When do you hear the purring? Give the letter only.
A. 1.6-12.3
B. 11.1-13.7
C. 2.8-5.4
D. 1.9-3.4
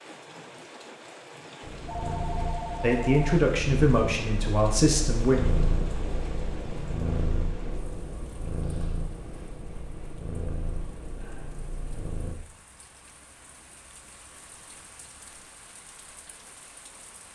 A.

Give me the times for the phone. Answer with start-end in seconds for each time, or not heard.
1.9-3.4.